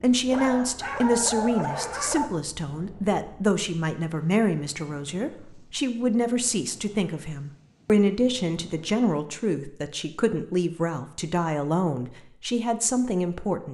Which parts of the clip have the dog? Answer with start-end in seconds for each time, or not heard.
0.2-2.3.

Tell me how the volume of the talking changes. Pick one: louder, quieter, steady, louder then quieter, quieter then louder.
steady.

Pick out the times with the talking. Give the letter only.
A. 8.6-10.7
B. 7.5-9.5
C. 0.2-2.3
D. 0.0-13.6
D.